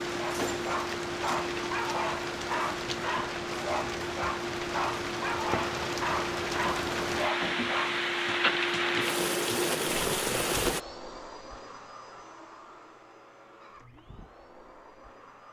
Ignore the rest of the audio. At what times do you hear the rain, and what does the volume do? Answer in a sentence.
You can hear the rain from 0.0 to 10.8 s, getting louder.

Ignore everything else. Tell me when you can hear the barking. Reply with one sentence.
The barking can be heard from 0.1 to 8.0 s.